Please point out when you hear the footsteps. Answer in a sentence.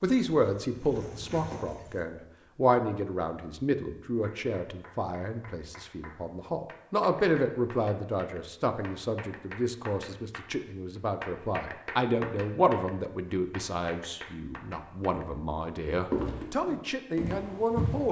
The footsteps can be heard from 0.0 to 2.0 s and from 16.1 to 18.0 s.